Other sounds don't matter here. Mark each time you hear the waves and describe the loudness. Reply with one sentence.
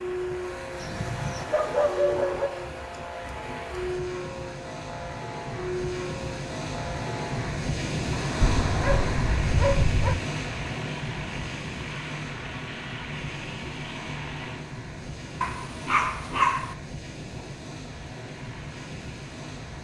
The waves can be heard from 0.0 to 19.7 s, getting louder then quieter.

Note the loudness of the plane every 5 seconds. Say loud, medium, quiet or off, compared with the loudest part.
loud, loud, loud, quiet.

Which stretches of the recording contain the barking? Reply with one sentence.
You can hear the barking from 0.8 to 2.5 s, from 8.4 to 10.2 s and from 15.4 to 16.8 s.